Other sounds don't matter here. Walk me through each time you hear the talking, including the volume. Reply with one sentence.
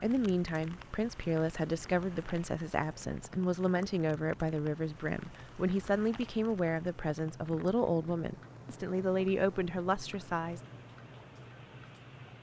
You can hear the talking from 0.0 to 10.6 s, at a steady volume.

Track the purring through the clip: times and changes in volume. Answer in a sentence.
You can't hear the purring here.